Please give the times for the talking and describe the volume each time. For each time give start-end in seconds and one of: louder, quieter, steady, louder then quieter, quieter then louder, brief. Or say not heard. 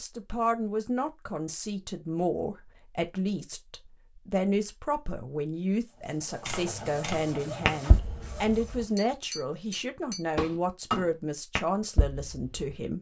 0.0-12.9 steady.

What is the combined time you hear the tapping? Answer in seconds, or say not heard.
6 s.